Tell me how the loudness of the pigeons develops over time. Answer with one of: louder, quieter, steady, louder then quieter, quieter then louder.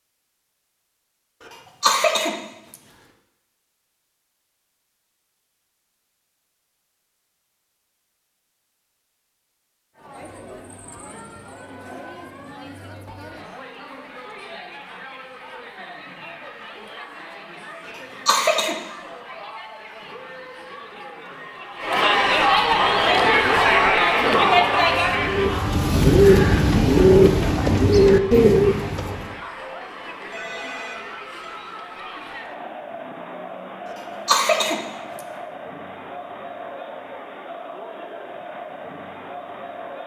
louder.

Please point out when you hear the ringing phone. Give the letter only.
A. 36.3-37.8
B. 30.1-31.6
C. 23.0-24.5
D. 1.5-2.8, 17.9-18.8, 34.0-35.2
B.